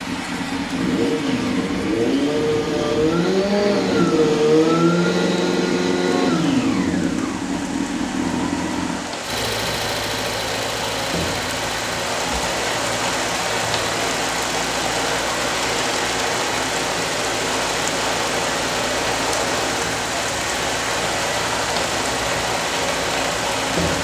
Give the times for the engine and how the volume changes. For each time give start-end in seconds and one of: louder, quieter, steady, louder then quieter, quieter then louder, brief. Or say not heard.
0.0-24.0 quieter.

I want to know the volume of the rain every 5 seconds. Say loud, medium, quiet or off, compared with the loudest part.
medium, medium, loud, loud, loud.